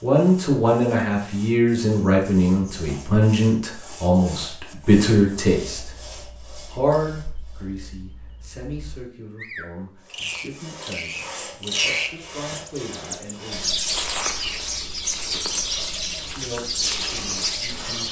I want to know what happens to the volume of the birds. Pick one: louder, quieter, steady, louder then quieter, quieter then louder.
louder.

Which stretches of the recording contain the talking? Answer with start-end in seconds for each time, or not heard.
0.0-5.9, 6.7-13.8, 16.4-18.0.